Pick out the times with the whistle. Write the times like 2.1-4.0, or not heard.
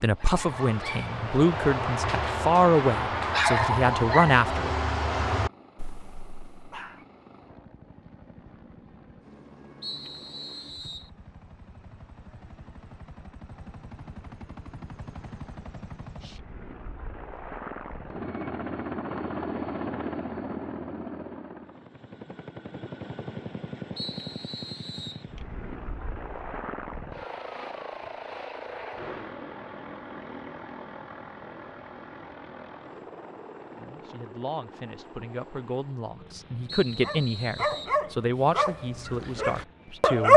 9.8-11.1, 23.9-25.2, 36.6-38.0.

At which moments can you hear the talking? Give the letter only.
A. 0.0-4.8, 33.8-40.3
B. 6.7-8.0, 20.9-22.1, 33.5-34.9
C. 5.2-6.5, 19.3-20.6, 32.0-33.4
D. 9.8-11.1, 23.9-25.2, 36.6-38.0
A.